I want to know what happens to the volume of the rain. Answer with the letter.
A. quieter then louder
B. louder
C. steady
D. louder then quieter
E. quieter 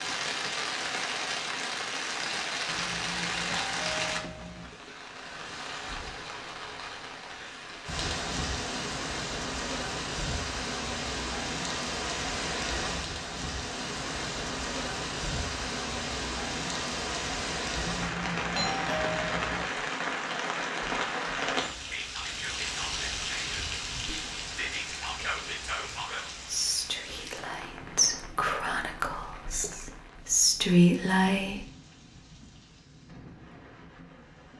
E.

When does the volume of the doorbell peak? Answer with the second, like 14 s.
19 s.